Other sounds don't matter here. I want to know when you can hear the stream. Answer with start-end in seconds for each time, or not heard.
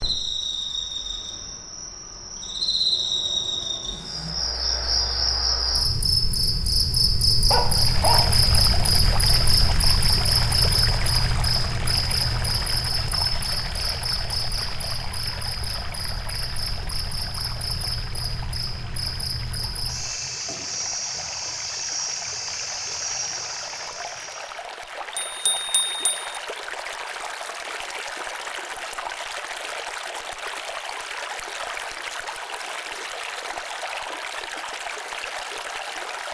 7.5-36.2.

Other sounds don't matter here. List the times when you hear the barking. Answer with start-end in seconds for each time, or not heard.
7.5-8.2.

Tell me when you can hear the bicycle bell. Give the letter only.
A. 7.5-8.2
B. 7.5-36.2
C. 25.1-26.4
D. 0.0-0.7
C.